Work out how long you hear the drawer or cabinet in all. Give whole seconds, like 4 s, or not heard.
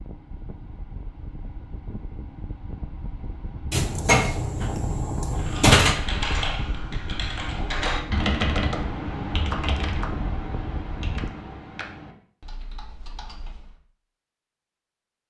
2 s.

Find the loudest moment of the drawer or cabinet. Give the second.
6 s.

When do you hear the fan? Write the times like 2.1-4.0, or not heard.
0.0-11.3.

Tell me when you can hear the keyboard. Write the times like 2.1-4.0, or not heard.
5.3-13.8.